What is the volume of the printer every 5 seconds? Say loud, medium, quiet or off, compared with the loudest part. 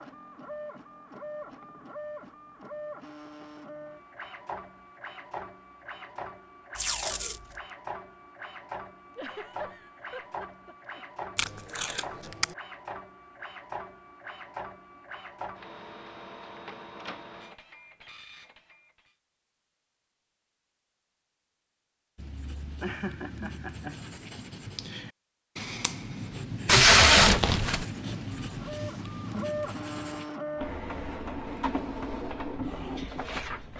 medium, medium, medium, medium, off, loud, loud.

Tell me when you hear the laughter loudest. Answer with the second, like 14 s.
23 s.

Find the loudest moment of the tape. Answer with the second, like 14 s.
27 s.